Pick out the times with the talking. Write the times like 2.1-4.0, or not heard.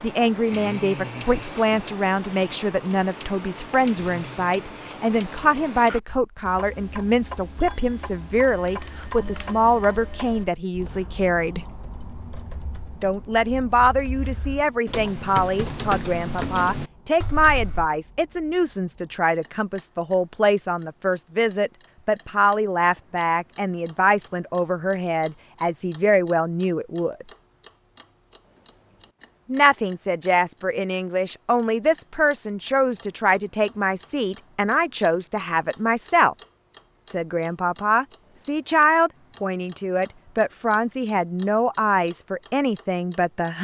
0.0-11.7, 13.0-27.2, 29.4-36.4, 37.0-43.6.